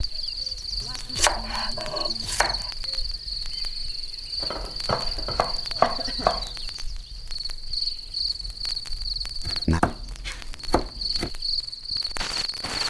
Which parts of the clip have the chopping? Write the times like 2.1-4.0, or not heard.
0.8-2.7, 4.4-6.5, 9.4-11.3.